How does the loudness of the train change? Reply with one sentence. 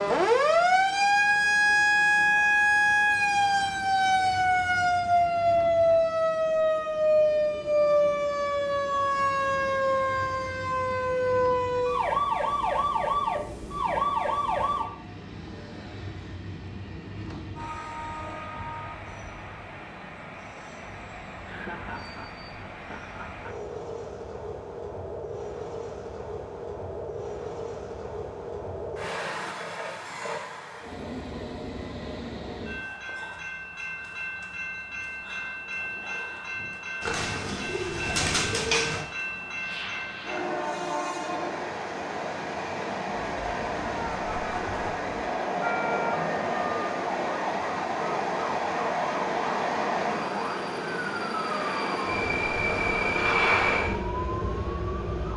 The volume of the train goes up.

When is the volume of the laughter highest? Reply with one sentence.
The loudest moment of the laughter is at 22 seconds.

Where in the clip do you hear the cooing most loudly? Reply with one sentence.
The volume of the cooing peaks at 39 seconds.